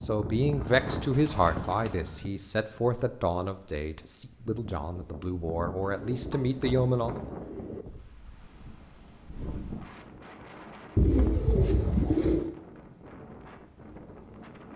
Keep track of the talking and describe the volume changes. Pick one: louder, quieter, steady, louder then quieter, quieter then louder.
quieter then louder.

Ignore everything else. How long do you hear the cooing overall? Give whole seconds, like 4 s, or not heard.
5 s.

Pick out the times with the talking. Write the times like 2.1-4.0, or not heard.
0.0-7.2.